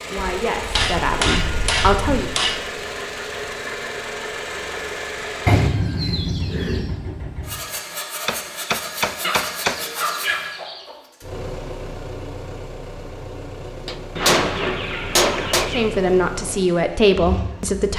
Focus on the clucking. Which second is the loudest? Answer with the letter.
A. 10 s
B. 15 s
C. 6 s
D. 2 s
C.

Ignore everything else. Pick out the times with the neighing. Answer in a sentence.
The neighing can't be heard in this clip.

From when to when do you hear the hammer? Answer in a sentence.
You can hear the hammer from 0.7 to 2.7 s, from 8.2 to 9.8 s and from 13.8 to 15.7 s.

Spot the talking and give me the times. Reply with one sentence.
You can hear the talking from 0.1 to 2.3 s and from 15.7 to 17.9 s.